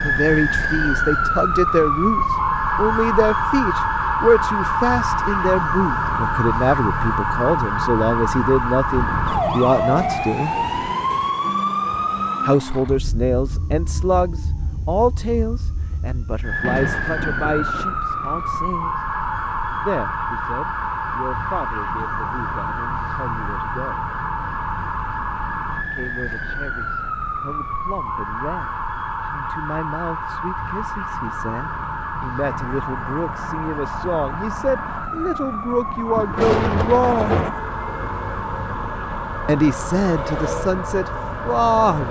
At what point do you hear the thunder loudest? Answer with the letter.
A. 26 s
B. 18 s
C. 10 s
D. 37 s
D.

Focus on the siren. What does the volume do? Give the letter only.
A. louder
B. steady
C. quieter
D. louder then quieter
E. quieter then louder
C.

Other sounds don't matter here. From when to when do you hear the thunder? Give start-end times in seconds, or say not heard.
8.9-10.9, 16.6-18.4, 36.1-37.5.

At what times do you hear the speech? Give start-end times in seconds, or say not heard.
0.0-10.6, 12.4-19.0, 19.8-24.1, 25.8-37.4, 39.5-42.0.